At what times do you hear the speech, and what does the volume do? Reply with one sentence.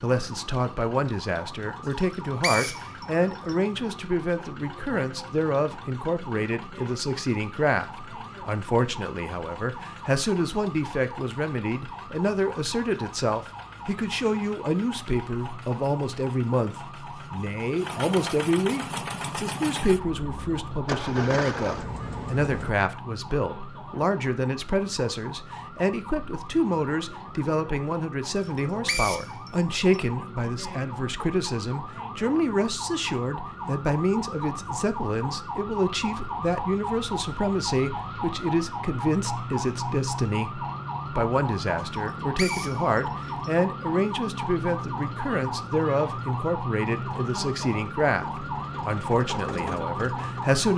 You can hear the speech from 0.0 to 50.7 s, at a steady volume.